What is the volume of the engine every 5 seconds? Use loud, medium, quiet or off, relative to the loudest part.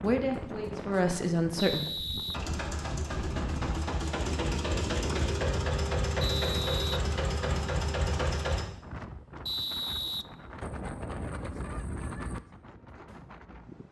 loud, loud, off.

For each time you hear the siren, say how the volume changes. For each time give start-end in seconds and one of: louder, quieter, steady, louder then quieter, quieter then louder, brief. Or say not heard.
not heard.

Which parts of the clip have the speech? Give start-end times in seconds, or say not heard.
0.0-1.9.